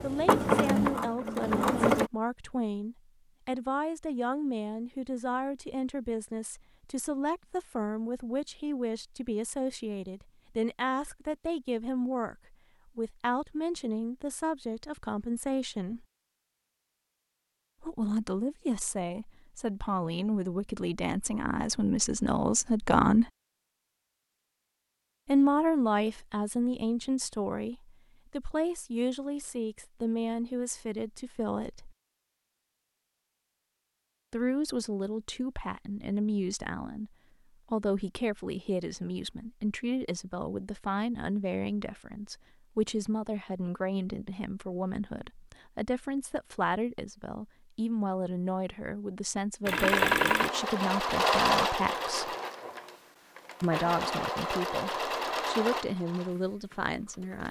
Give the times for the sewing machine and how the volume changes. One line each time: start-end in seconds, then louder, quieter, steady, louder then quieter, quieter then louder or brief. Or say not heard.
0.0-2.1 brief
49.6-57.4 quieter.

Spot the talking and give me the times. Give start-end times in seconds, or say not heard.
0.0-16.1, 17.8-23.2, 25.2-31.9, 34.3-37.1, 37.7-52.4, 53.6-57.4.